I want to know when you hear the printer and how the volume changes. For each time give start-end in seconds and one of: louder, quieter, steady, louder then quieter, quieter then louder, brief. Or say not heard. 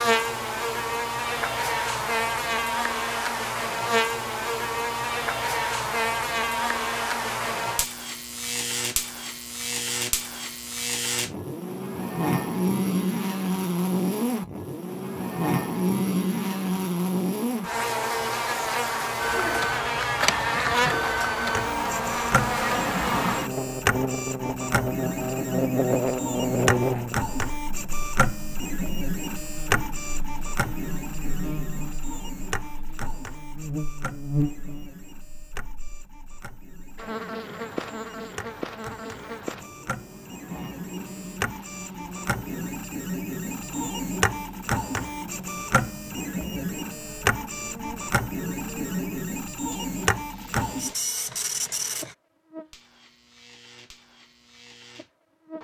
19.2-52.1 quieter then louder.